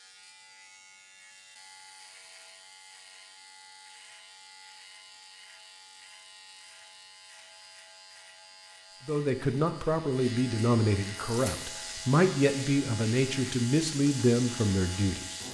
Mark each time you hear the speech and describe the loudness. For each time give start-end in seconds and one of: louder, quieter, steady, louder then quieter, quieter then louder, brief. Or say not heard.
9.1-15.2 steady.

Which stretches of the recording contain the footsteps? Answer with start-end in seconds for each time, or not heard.
not heard.